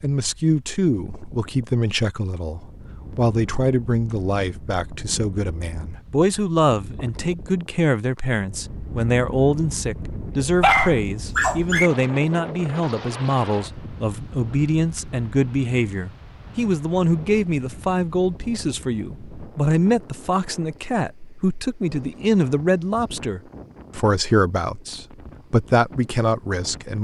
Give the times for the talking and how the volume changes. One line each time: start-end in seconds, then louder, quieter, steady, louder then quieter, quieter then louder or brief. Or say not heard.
0.0-26.9 steady.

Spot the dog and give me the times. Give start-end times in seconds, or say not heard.
10.4-11.9.